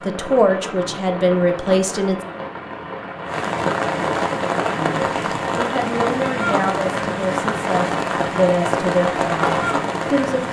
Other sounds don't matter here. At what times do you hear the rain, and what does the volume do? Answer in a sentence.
The rain can be heard from 0.0 to 10.4 s, getting louder.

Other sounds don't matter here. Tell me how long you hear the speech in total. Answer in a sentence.
You can hear the speech for 8 seconds altogether.